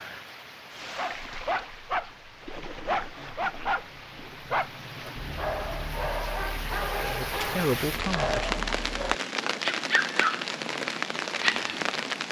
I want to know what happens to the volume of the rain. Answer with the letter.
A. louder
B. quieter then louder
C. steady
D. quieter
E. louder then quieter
A.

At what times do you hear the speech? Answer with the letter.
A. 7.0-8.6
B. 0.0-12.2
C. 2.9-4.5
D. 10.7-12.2
A.